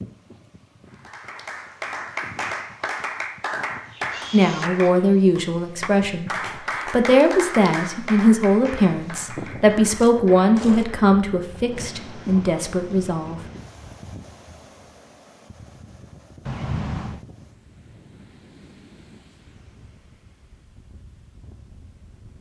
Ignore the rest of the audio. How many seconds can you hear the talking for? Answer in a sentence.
The talking can be heard for 9 seconds in total.